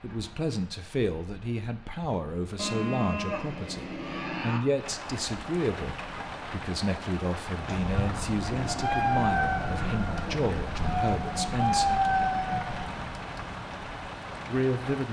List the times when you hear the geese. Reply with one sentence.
The geese can be heard from 7.6 to 12.9 s.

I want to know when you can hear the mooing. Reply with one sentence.
The mooing can be heard from 2.5 to 4.6 s.